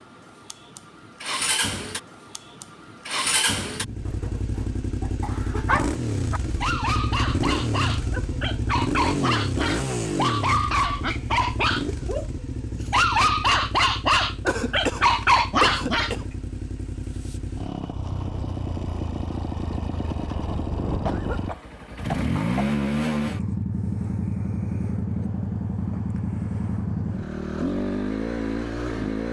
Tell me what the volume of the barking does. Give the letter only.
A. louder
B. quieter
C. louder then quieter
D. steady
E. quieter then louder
A.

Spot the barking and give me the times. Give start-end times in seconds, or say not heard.
5.3-16.1.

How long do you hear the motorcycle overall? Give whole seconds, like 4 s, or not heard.
29 s.